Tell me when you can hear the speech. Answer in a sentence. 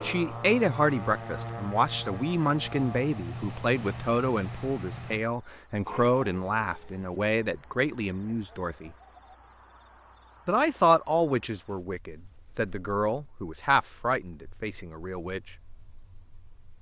The speech can be heard from 0.0 to 8.9 s and from 10.4 to 15.4 s.